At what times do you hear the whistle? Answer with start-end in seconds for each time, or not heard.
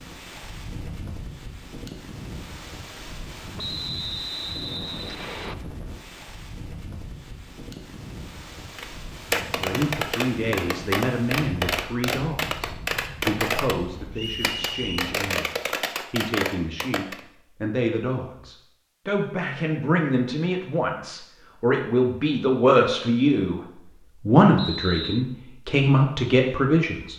3.5-5.5, 14.2-15.0, 24.6-25.2.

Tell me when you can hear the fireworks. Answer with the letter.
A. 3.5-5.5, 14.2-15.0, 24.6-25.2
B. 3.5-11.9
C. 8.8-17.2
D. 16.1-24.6
C.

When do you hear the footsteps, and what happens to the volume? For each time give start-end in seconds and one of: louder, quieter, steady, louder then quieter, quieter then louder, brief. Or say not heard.
not heard.